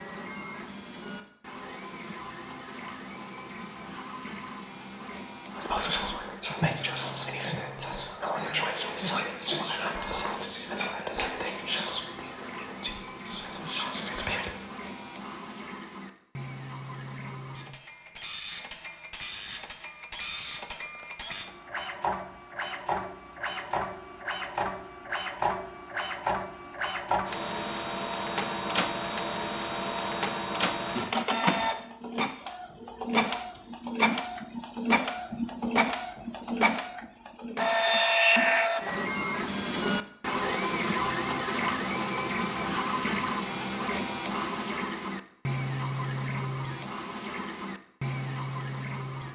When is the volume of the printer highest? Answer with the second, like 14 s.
38 s.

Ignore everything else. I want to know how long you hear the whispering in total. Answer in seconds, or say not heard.
9 s.